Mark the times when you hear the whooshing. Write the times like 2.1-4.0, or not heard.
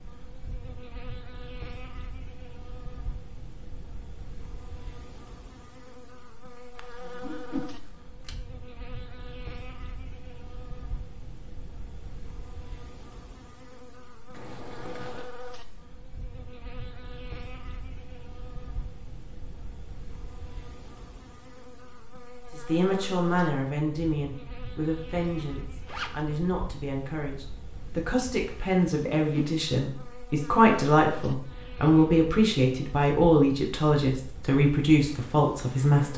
7.2-7.8, 29.1-29.6.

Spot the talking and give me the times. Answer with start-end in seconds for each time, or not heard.
22.6-36.1.